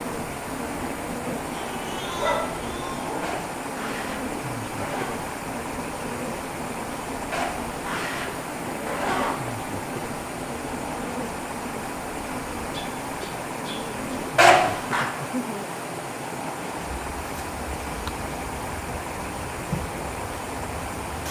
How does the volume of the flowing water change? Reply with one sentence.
The volume of the flowing water stays about the same.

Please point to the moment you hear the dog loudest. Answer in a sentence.
The volume of the dog peaks at 2 seconds.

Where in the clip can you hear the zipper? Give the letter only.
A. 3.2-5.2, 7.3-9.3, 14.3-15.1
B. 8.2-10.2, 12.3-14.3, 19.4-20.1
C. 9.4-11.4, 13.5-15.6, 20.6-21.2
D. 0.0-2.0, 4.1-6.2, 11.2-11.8
A.